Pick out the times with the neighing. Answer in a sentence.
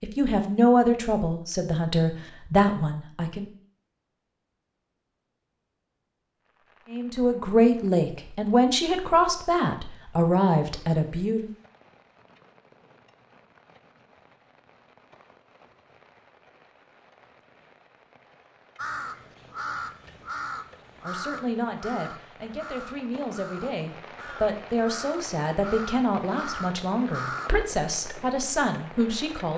The neighing can't be heard in this clip.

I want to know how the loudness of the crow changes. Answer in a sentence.
The volume of the crow goes down, then up.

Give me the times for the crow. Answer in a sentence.
The crow can be heard from 18.8 to 27.6 s.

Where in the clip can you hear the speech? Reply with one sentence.
The speech can be heard from 0.0 to 3.5 s, from 6.9 to 11.5 s and from 21.0 to 29.5 s.